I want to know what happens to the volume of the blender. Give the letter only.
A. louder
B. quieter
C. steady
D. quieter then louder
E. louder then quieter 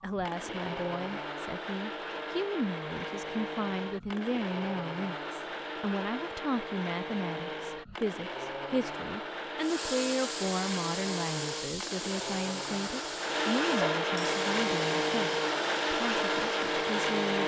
A.